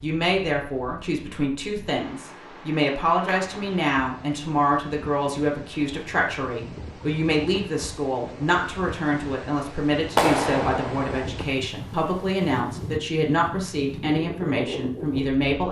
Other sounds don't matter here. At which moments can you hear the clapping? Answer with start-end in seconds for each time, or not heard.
3.2-3.9, 10.2-11.3.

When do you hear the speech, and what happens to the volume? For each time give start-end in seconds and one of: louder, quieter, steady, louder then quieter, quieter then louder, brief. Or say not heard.
0.0-15.6 steady.